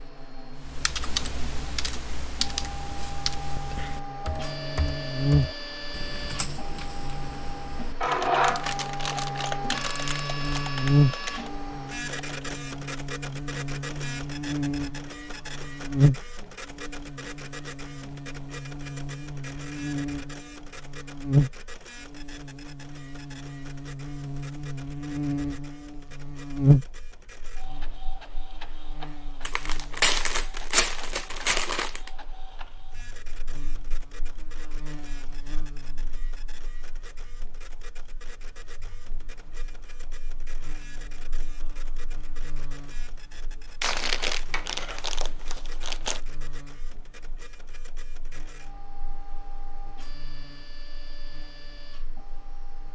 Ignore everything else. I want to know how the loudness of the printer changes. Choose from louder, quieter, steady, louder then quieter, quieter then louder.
quieter.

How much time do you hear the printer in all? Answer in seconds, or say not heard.
53 s.